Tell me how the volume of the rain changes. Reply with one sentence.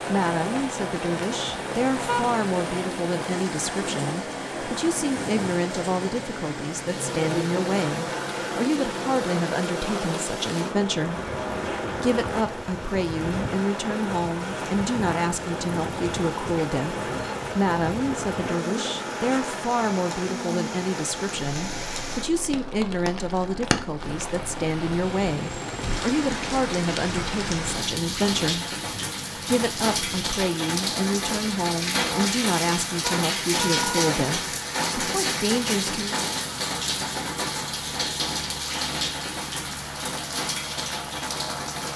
The loudness of the rain goes up.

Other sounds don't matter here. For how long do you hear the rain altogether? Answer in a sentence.
The rain can be heard for 42 seconds in total.